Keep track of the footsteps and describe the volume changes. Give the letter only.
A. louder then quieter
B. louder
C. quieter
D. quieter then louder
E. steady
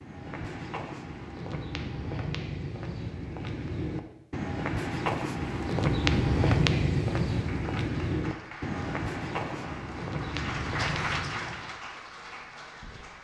A.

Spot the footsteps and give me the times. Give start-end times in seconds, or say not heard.
0.0-11.7.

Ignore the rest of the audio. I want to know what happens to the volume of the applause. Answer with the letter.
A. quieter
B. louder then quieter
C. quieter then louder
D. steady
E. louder
B.